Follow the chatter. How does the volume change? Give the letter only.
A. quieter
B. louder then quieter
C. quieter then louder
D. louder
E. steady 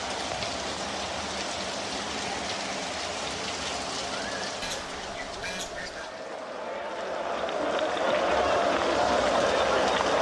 D.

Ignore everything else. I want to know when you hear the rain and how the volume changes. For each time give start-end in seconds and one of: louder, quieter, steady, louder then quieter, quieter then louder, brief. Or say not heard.
0.0-10.1 quieter then louder.